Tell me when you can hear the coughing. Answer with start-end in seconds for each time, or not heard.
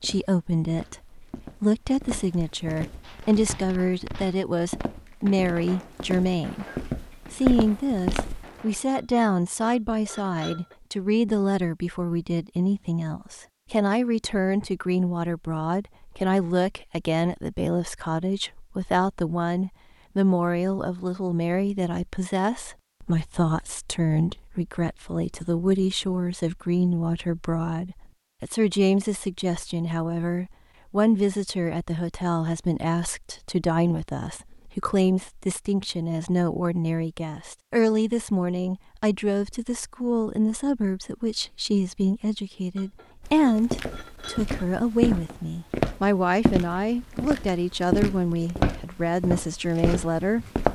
not heard.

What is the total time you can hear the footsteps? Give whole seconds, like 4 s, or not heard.
16 s.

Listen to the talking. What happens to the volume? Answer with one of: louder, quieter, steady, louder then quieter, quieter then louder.
steady.